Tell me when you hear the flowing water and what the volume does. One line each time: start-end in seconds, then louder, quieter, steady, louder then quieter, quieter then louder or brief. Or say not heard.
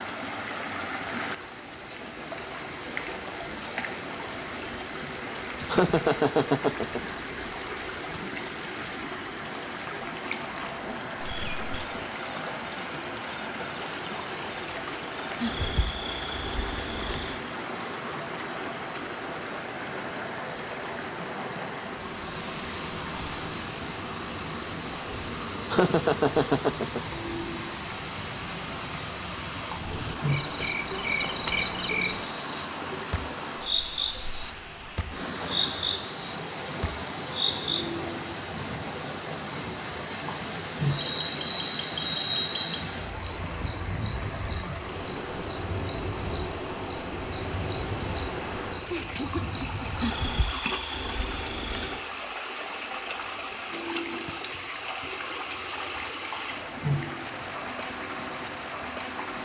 0.0-59.4 steady.